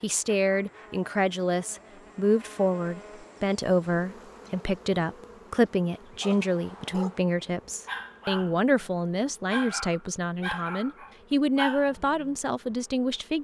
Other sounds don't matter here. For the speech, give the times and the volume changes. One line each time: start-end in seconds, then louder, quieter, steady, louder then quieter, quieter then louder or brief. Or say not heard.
0.0-13.4 steady.